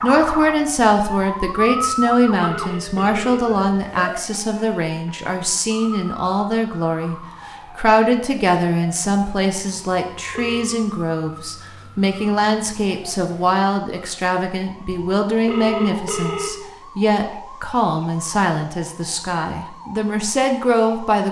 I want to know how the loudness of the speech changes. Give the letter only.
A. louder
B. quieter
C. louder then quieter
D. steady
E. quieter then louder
D.